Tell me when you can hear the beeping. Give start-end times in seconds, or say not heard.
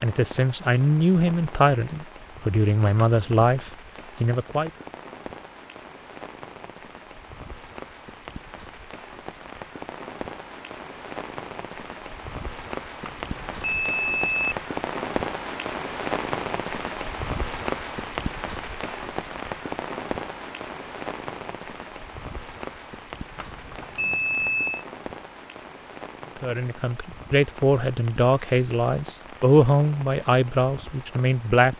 3.0-3.5, 13.0-14.6, 23.4-24.9.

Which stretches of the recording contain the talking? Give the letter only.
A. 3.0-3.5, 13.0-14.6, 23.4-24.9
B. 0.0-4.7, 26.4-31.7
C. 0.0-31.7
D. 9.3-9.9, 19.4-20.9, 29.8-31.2
B.